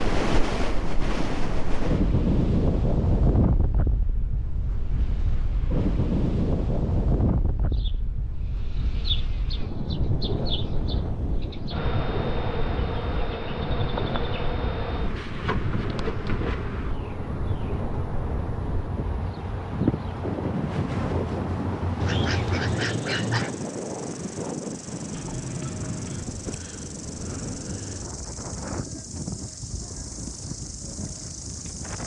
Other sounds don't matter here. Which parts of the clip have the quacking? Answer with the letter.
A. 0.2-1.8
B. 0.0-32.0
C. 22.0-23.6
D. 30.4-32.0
C.